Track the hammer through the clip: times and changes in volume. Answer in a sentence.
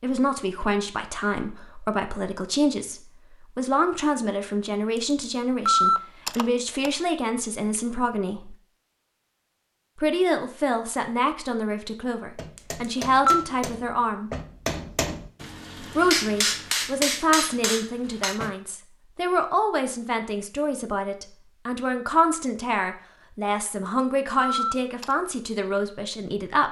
The hammer can be heard from 12.3 to 18.5 s, getting louder.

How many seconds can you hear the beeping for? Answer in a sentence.
The beeping can be heard for 3 seconds in total.